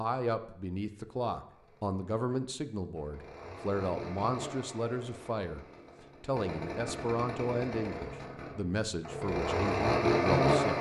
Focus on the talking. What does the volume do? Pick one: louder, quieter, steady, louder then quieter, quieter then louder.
steady.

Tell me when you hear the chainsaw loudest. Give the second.
10 s.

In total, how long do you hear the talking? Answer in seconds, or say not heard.
11 s.